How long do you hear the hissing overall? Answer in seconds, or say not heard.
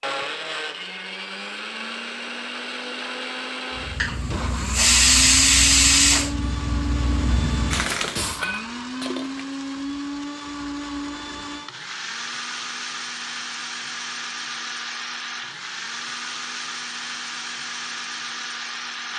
5 s.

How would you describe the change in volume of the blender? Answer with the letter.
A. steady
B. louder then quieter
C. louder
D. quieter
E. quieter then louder
A.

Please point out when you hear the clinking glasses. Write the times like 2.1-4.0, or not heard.
8.2-9.6.